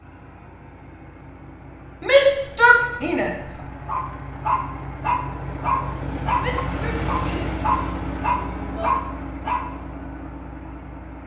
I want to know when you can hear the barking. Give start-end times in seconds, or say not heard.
3.9-9.7.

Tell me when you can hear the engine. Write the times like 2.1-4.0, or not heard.
0.0-11.2.